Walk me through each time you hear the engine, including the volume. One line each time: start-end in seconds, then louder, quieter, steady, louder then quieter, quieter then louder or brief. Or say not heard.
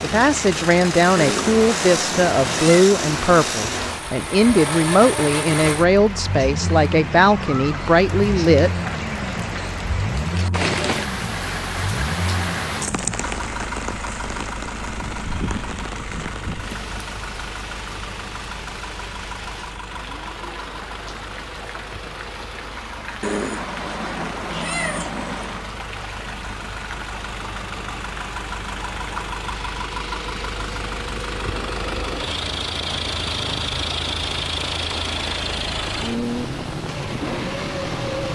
0.0-38.2 quieter then louder.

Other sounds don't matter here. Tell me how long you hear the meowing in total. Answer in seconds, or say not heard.
4 s.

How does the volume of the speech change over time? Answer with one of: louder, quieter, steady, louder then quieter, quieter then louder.
steady.